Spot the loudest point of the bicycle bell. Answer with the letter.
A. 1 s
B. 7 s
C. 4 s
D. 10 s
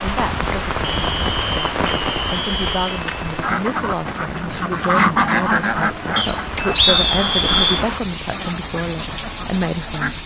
B.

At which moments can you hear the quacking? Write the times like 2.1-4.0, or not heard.
3.2-10.2.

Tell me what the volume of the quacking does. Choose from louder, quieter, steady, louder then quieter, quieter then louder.
louder then quieter.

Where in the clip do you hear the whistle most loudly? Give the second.
7 s.